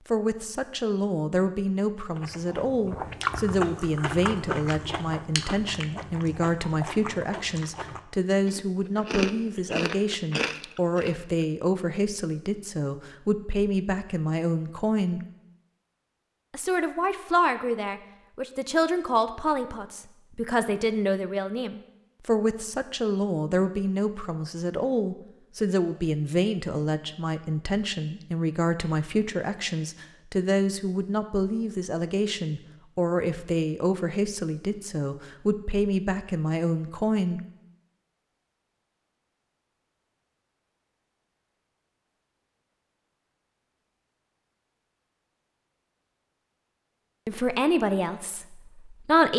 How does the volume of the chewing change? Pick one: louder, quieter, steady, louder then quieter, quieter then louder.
quieter then louder.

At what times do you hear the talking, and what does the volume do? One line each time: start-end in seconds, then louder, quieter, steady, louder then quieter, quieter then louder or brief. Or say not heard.
0.1-15.2 steady
16.5-37.4 steady
47.2-49.3 brief.